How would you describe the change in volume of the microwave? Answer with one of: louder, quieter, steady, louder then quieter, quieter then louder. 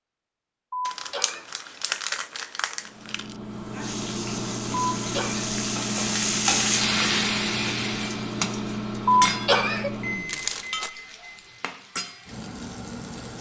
steady.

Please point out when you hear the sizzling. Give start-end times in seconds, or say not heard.
3.4-13.3.